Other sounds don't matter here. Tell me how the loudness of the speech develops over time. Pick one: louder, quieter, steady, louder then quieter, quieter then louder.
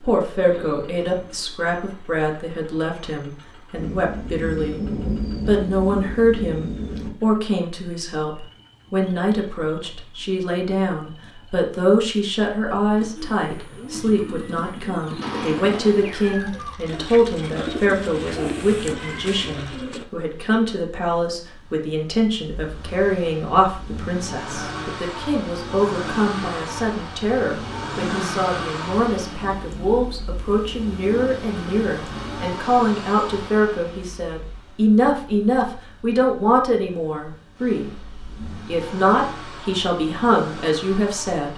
steady.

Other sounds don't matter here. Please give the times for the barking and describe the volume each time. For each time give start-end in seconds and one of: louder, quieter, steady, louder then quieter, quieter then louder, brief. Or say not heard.
not heard.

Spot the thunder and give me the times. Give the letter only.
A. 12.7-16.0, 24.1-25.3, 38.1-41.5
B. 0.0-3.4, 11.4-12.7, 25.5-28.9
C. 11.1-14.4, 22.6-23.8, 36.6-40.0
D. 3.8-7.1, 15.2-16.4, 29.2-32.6
D.